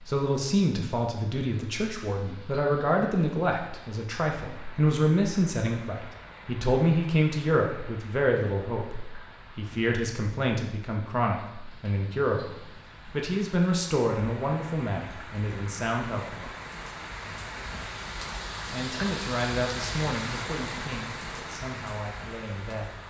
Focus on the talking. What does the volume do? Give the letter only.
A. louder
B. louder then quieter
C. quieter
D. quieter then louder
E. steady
C.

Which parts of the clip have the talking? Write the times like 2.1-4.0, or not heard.
0.1-16.5, 18.7-22.9.